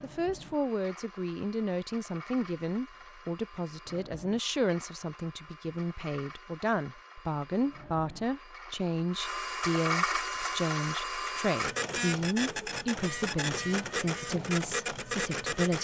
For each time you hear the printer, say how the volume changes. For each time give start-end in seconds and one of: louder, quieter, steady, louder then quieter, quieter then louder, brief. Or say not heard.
0.0-15.8 louder.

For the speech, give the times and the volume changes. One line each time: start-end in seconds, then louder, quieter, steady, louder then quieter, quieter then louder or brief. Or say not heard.
0.0-15.8 steady.